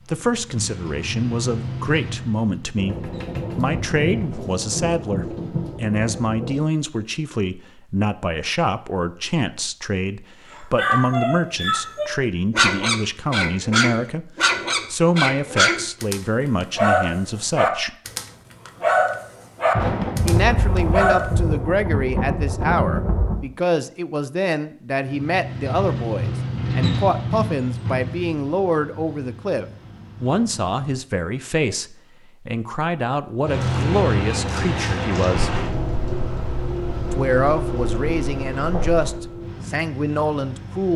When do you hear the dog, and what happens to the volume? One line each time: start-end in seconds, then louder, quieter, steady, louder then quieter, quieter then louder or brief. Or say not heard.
10.8-21.3 steady.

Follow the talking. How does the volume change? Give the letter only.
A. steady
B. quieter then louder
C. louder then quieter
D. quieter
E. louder
A.